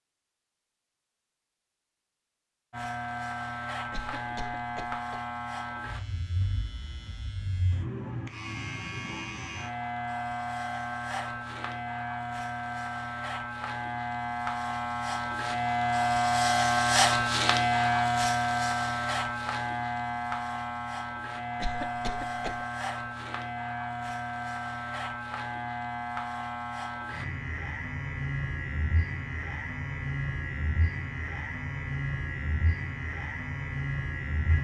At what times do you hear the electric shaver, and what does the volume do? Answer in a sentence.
You can hear the electric shaver from 2.7 to 34.5 s, getting louder then quieter.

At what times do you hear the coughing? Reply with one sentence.
The coughing can be heard from 3.9 to 5.2 s and from 21.6 to 22.6 s.